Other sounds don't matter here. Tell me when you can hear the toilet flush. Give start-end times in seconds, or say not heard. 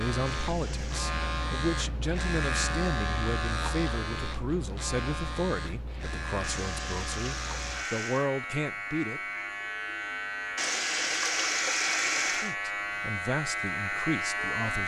0.2-1.0, 6.4-8.3, 10.6-12.6.